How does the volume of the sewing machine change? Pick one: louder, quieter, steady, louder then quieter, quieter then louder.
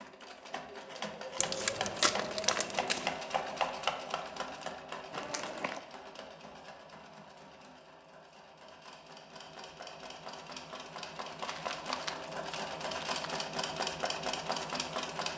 quieter then louder.